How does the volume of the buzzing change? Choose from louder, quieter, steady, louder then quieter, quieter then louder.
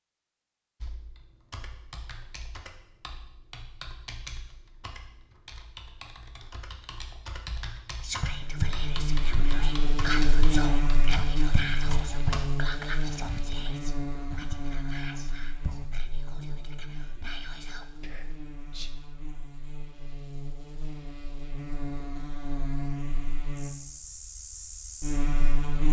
quieter then louder.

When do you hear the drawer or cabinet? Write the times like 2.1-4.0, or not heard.
not heard.